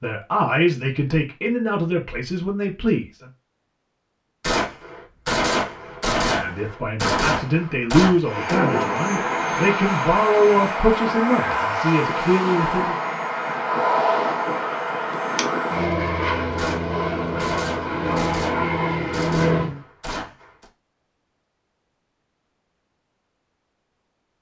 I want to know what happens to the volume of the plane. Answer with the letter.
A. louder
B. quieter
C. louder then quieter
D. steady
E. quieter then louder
D.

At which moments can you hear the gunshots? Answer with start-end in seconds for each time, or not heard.
4.4-8.6, 16.6-20.7.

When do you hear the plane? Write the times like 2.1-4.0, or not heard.
8.2-19.9.